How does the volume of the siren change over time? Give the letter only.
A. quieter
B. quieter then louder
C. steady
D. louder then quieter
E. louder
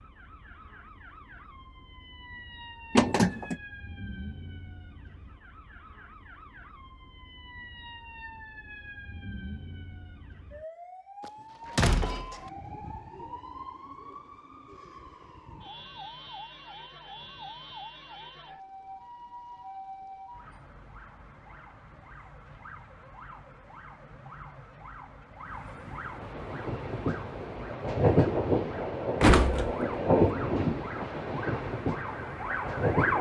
E.